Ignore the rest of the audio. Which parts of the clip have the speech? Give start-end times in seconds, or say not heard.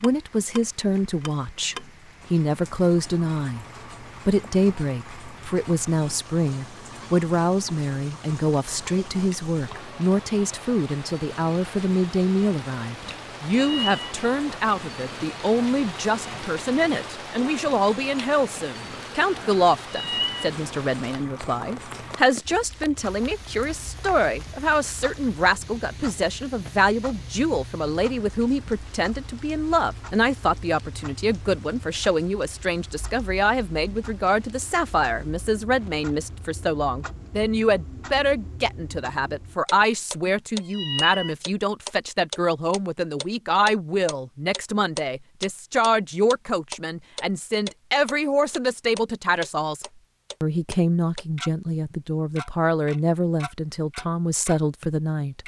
0.0-3.6, 4.2-55.4.